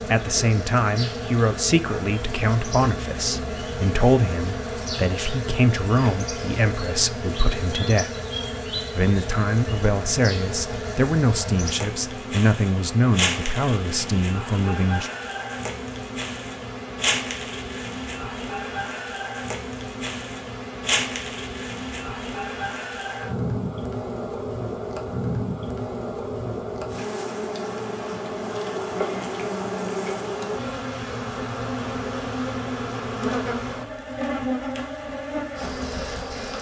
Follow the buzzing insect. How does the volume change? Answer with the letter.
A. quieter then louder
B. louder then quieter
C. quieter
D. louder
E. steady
E.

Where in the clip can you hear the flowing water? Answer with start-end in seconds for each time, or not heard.
not heard.